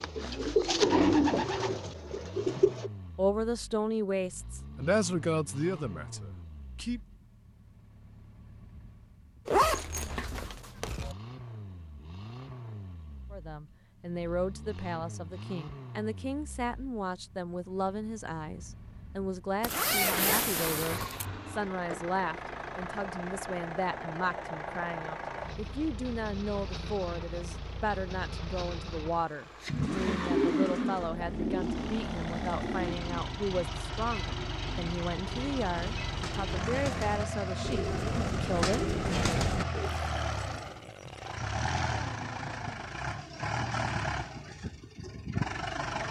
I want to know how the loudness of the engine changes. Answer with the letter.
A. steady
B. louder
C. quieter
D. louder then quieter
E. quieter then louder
B.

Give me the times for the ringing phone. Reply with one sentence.
You can't hear the ringing phone here.